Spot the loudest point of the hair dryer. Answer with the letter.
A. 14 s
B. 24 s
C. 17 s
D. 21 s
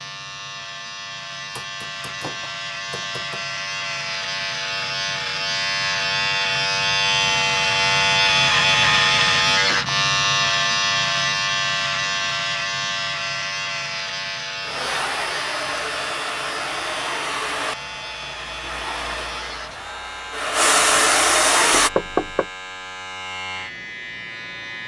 D.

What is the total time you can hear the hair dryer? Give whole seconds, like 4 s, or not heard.
7 s.